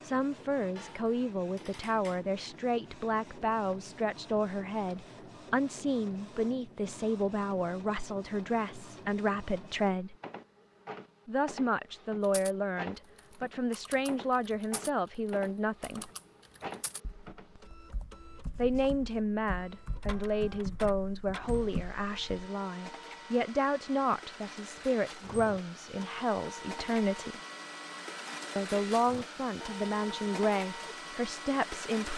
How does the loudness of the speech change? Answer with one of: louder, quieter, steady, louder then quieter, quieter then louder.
steady.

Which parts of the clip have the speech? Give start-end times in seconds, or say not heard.
0.0-10.2, 11.2-16.1, 18.6-27.4, 28.6-32.1.